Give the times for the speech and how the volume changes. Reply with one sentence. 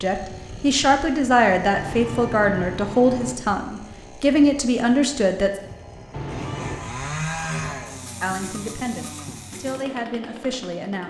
You can hear the speech from 0.0 to 5.5 s, getting quieter then louder; and briefly from 8.2 to 11.0 s.